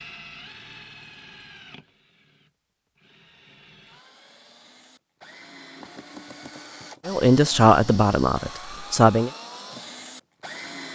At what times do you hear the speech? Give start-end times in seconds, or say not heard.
7.0-9.3.